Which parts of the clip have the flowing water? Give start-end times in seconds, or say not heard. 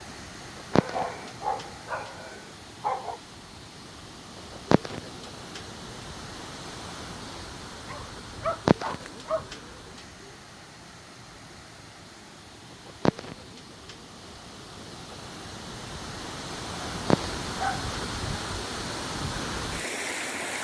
0.0-20.5.